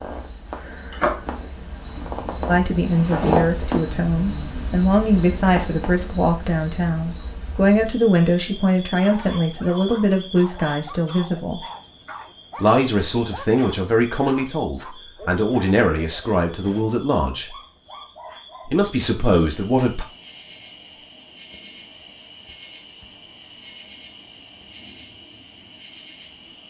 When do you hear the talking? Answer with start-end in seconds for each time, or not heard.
2.5-11.6, 12.6-17.5, 18.6-20.1.